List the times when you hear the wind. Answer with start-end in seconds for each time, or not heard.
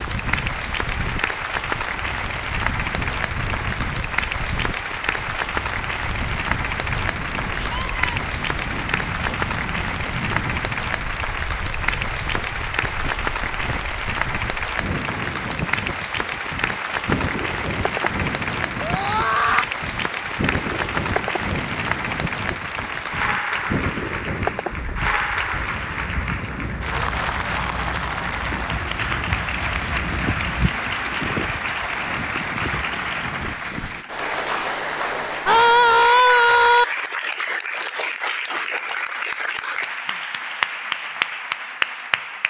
0.0-34.0.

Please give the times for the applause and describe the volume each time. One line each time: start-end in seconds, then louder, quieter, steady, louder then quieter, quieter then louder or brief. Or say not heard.
0.0-42.4 steady.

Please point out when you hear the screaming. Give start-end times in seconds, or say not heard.
7.5-8.2, 18.8-19.6, 35.5-36.9.